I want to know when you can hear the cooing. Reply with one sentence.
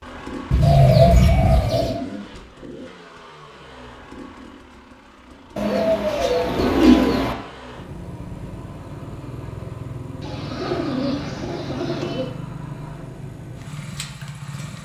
The cooing can be heard from 0.5 to 2.0 s, from 5.5 to 7.3 s and from 10.2 to 12.3 s.